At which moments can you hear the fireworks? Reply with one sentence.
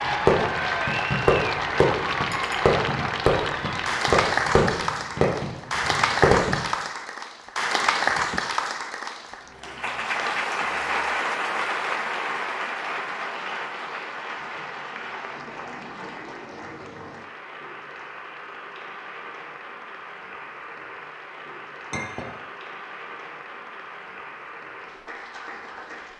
You can hear the fireworks from 0.1 to 6.5 s.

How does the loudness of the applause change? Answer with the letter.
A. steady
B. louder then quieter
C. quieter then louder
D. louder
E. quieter
E.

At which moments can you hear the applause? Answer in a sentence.
The applause can be heard from 0.0 to 26.1 s.